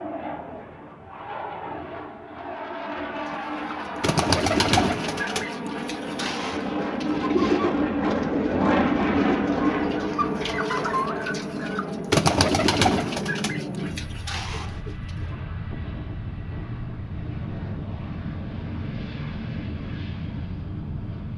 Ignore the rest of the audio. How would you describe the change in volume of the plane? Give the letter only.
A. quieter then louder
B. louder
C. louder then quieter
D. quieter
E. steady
C.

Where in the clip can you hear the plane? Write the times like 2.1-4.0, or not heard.
0.0-21.3.